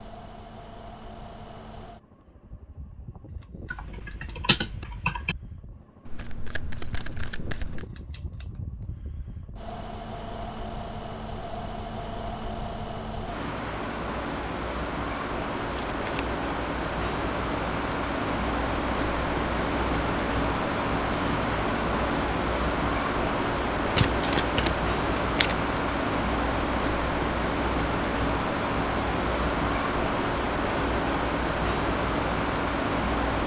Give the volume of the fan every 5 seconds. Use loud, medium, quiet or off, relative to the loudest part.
quiet, quiet, medium, loud, loud, loud, loud.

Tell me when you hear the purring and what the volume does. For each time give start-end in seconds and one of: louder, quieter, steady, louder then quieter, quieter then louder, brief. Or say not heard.
not heard.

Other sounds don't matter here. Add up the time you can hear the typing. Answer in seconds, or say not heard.
2 s.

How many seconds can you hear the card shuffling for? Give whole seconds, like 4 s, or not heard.
4 s.